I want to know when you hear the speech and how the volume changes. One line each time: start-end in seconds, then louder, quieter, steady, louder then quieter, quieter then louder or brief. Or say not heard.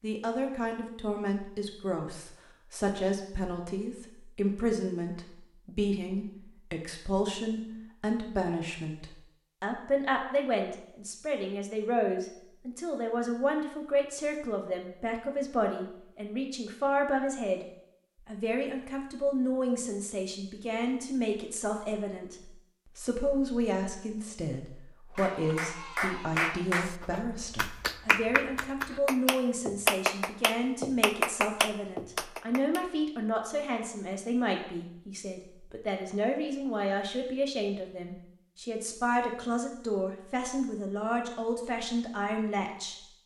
0.0-17.6 steady
18.2-43.0 steady.